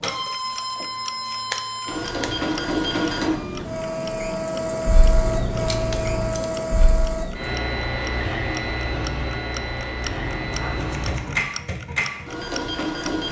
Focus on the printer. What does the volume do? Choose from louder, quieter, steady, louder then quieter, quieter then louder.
steady.